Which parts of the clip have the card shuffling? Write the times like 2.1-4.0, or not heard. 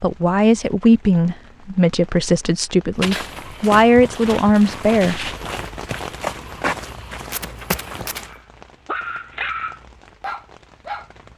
7.3-8.2.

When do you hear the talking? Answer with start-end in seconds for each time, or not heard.
0.0-5.3.